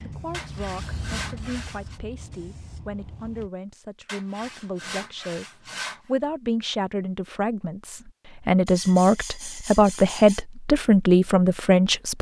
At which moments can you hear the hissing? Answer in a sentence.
The hissing can be heard from 0.0 to 3.5 s.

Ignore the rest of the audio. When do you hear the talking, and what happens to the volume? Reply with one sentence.
The talking can be heard from 0.0 to 12.1 s, getting louder.